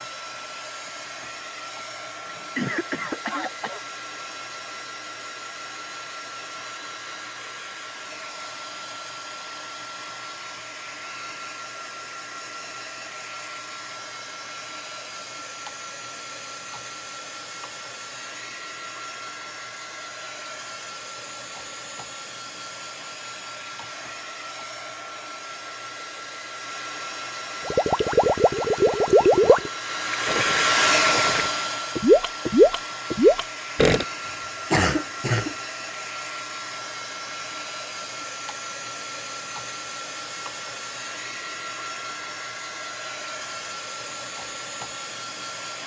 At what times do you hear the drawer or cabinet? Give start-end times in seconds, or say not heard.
not heard.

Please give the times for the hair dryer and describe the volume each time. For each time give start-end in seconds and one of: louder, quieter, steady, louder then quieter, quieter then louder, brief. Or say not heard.
0.0-45.8 louder then quieter.